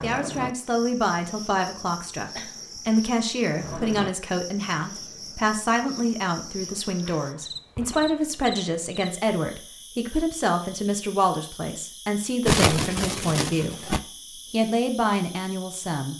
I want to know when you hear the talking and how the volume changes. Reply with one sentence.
The talking can be heard from 0.0 to 13.8 s, at a steady volume; and briefly from 14.5 to 16.1 s.